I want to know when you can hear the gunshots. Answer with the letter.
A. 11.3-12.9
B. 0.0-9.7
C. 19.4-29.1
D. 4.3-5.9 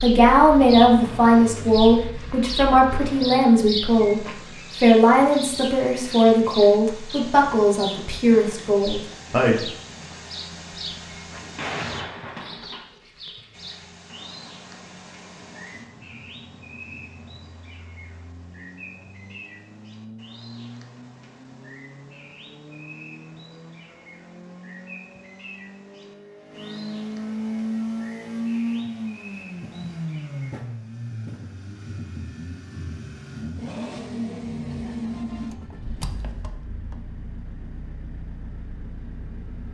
A.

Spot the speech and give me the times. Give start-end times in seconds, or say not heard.
0.0-9.7.